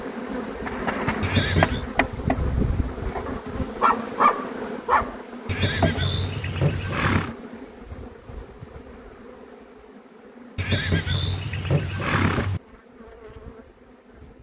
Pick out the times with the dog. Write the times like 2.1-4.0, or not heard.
3.2-5.2.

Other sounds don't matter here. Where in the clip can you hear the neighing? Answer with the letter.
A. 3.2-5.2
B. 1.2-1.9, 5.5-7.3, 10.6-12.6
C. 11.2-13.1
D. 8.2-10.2
B.